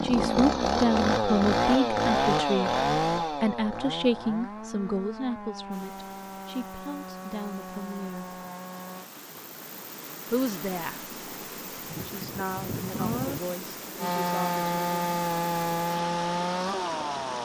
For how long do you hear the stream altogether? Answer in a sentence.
You can hear the stream for 12 seconds altogether.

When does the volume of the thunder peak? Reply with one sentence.
The loudest moment of the thunder is at 13 seconds.